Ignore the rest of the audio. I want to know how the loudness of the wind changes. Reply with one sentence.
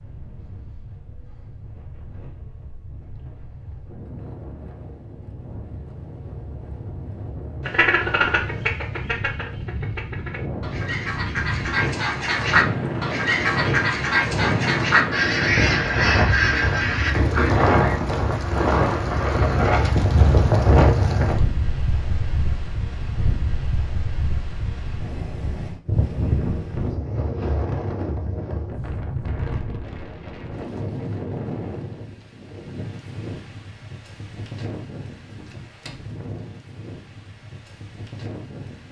The loudness of the wind goes up, then down.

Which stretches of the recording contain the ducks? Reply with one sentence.
You can hear the ducks from 7.6 to 18.0 s.